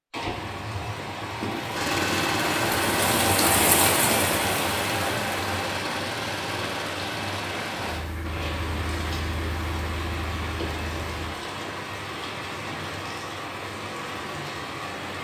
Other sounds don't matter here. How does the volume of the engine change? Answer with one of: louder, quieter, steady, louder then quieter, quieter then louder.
quieter.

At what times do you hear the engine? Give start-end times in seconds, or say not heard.
1.7-11.3.